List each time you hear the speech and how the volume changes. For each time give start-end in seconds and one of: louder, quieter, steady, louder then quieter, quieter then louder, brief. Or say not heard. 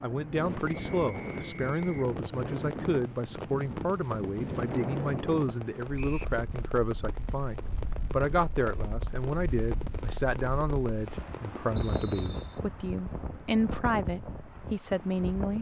0.0-15.5 steady.